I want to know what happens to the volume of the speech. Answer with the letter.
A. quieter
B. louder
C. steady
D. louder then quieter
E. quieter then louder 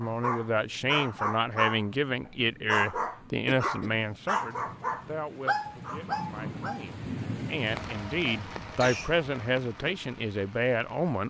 E.